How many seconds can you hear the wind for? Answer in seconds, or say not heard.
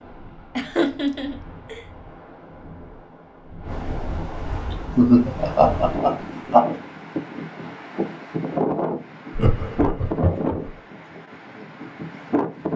13 s.